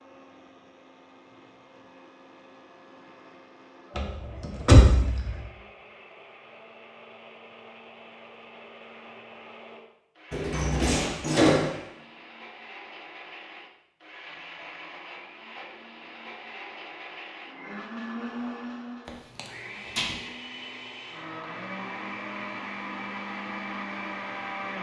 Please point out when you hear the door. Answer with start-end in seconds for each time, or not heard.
4.0-5.4, 10.3-11.7, 19.1-20.1.